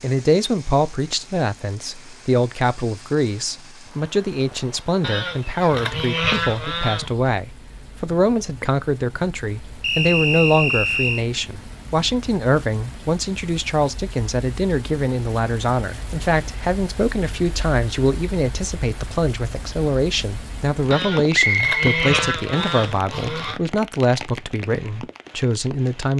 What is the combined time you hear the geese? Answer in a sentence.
The geese can be heard for 5 seconds in total.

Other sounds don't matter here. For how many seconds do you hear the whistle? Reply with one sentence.
You can hear the whistle for 3 seconds altogether.